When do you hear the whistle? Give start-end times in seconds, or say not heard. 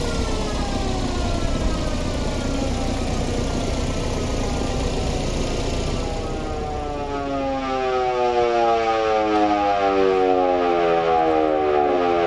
not heard.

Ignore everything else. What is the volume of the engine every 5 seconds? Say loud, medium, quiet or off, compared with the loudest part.
loud, medium, quiet.